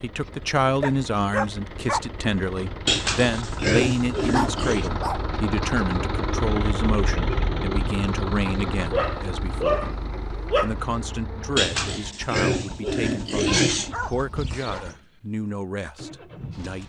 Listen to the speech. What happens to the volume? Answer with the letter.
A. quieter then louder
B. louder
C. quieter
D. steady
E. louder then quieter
C.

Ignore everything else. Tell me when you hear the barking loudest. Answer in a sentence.
The volume of the barking peaks at 10 seconds.